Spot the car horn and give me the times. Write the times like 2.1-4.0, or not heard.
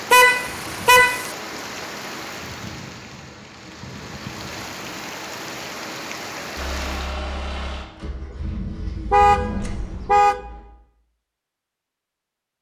0.1-1.3, 9.1-10.4.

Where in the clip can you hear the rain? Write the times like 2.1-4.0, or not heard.
0.0-7.2.